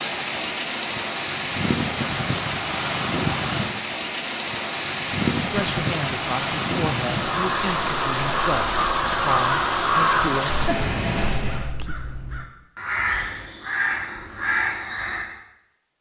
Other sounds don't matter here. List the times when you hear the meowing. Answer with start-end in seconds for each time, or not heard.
not heard.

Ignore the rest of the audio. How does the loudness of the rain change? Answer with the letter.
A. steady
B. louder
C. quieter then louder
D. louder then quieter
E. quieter
A.